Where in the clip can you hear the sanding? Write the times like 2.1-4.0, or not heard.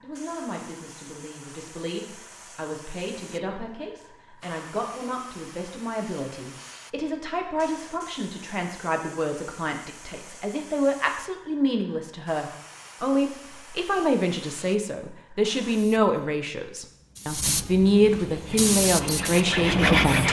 18.2-20.2.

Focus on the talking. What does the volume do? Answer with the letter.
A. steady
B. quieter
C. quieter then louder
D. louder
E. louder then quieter
D.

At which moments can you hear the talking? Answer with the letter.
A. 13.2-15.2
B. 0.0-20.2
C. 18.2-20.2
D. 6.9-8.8
B.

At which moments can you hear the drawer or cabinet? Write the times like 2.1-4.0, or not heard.
not heard.